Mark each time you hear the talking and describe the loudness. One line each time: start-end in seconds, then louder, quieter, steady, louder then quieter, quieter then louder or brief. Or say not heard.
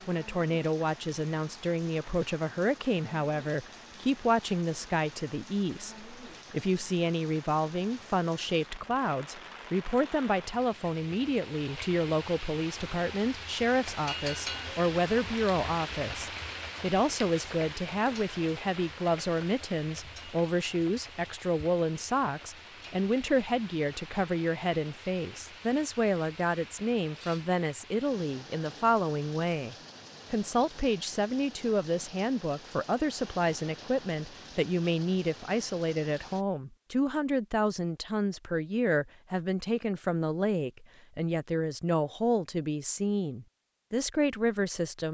0.1-45.1 steady.